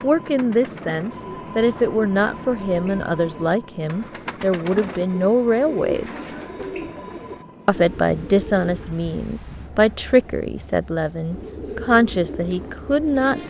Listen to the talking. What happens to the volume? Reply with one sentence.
The loudness of the talking stays about the same.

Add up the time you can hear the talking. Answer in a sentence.
You can hear the talking for 12 seconds altogether.